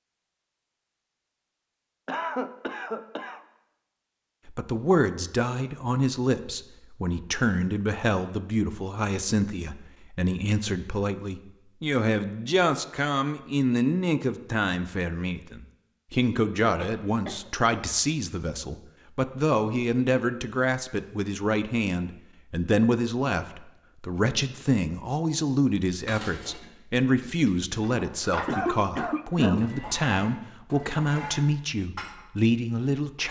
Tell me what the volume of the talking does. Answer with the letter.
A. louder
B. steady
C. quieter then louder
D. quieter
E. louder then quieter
B.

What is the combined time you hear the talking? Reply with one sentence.
You can hear the talking for 29 seconds altogether.